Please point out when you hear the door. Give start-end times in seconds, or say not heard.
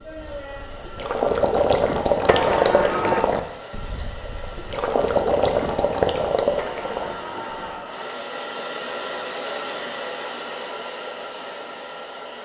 2.2-3.4, 6.5-8.2.